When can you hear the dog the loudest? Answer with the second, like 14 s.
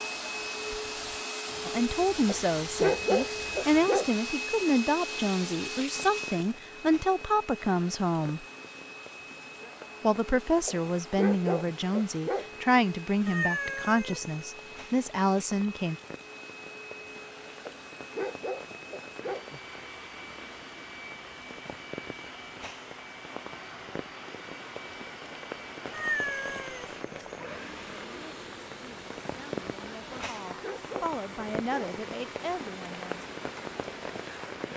3 s.